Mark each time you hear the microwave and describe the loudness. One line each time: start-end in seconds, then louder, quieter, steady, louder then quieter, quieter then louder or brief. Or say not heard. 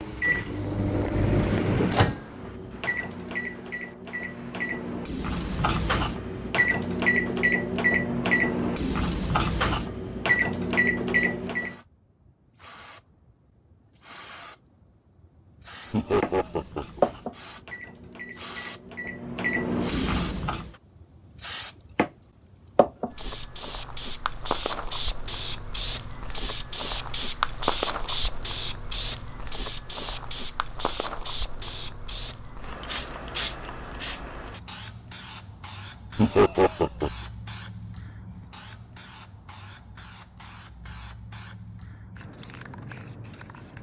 0.0-11.8 quieter then louder
15.7-20.7 louder.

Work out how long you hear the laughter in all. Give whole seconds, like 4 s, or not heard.
2 s.